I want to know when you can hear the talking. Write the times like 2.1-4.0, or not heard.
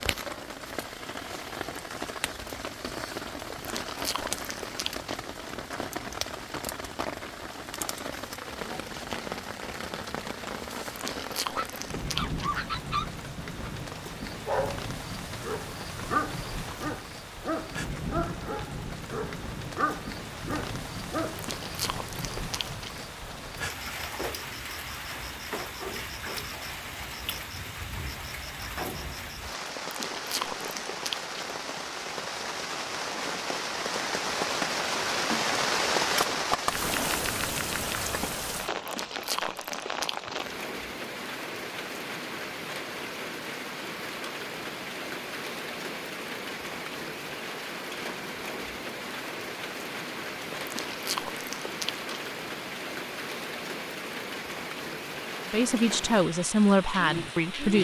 55.5-57.8.